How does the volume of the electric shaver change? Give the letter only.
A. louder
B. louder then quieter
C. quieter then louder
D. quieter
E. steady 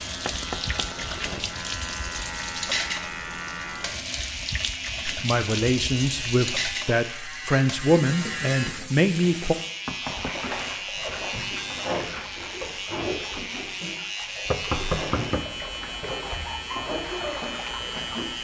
E.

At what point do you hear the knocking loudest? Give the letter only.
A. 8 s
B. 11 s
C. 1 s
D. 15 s
D.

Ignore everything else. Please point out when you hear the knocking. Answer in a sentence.
You can hear the knocking from 0.2 to 0.9 s, from 9.8 to 10.4 s and from 14.5 to 15.6 s.